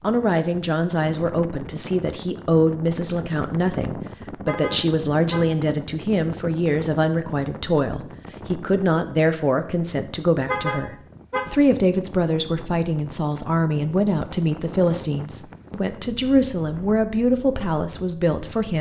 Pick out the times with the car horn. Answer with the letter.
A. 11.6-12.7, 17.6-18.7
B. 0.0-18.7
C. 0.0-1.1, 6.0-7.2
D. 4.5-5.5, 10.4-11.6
D.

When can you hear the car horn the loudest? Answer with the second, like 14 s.
11 s.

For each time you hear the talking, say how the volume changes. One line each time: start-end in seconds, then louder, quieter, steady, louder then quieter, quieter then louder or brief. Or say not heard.
0.0-18.7 steady.